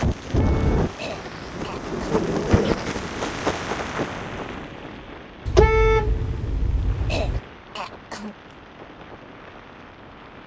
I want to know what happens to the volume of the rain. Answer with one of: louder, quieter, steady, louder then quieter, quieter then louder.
quieter.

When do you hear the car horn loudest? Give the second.
6 s.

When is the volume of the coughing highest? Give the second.
7 s.